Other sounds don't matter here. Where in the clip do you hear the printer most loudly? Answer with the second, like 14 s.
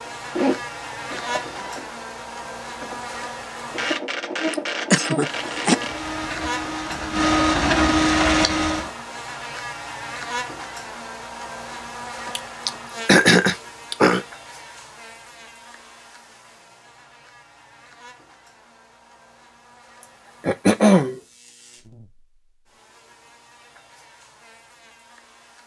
8 s.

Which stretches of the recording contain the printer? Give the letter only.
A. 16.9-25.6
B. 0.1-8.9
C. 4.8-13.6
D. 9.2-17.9
B.